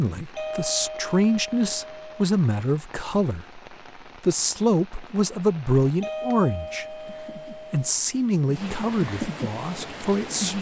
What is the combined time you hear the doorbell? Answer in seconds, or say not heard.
4 s.